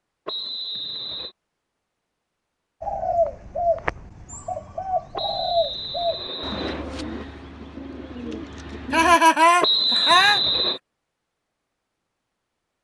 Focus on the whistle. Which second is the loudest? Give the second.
10 s.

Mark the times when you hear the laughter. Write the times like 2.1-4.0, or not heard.
8.9-10.4.